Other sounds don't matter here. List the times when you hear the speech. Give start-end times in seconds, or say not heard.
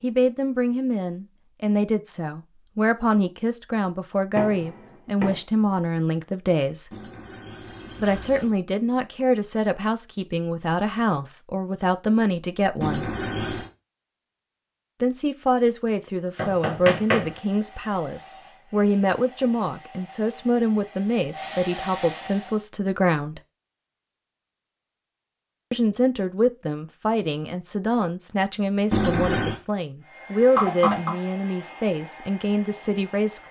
0.0-7.0, 8.0-13.1, 15.0-23.4, 25.7-33.4.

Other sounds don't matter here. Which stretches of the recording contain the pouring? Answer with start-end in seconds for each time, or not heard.
6.9-8.6, 12.8-13.7, 28.9-29.6.